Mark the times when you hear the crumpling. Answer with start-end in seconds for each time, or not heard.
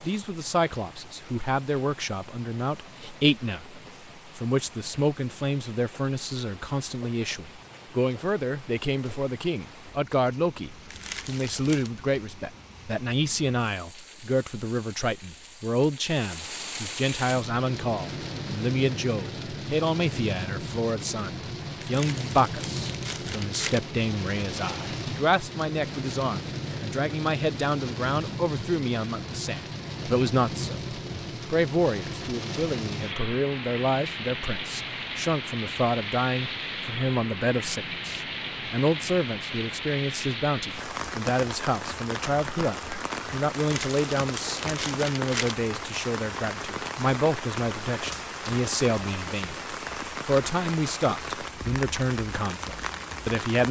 10.8-11.9, 21.8-23.8, 43.5-45.5.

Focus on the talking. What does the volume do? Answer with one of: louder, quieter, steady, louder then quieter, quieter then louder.
steady.